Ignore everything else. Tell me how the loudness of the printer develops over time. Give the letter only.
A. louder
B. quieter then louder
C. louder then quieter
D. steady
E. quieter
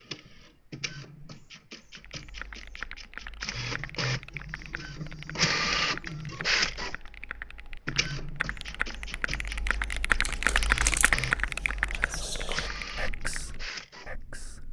C.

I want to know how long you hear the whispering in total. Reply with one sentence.
The whispering can be heard for 3 seconds in total.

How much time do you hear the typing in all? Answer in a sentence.
You can hear the typing for 12 seconds altogether.